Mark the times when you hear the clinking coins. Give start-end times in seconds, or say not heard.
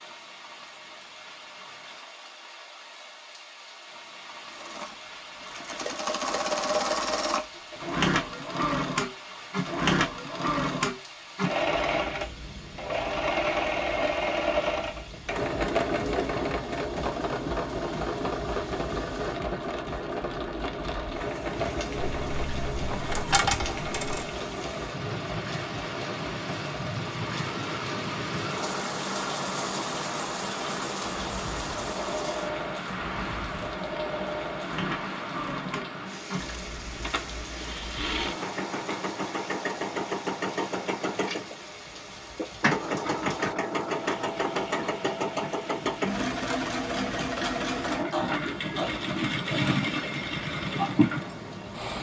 21.9-24.3.